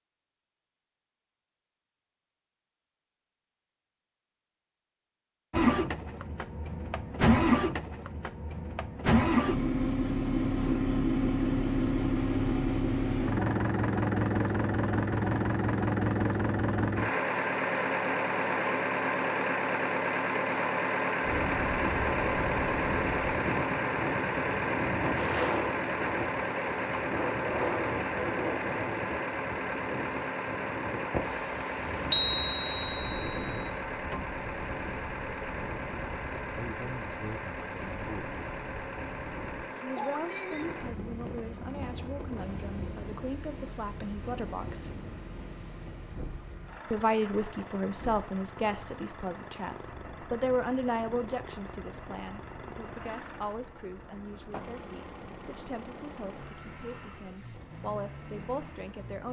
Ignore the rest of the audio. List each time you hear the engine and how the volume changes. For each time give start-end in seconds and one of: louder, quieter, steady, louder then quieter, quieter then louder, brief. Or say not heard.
5.5-59.2 quieter.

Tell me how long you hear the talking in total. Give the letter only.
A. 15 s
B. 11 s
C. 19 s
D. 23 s
C.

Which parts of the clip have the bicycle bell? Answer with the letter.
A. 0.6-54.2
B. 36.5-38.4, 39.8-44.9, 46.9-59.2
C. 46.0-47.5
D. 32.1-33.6
D.